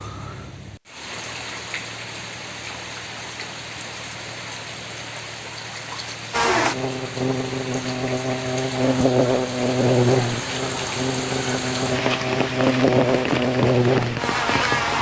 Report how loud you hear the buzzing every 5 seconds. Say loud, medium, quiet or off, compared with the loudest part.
off, loud, loud.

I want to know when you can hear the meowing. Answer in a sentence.
You can't hear the meowing here.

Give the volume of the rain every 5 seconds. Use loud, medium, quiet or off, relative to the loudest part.
medium, medium, loud.